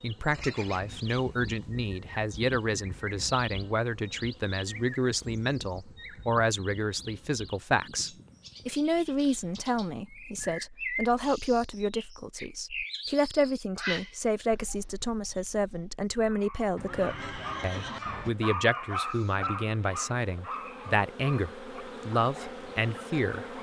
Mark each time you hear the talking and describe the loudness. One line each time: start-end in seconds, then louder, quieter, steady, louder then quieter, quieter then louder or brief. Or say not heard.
0.0-23.4 steady.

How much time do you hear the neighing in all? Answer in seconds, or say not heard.
3 s.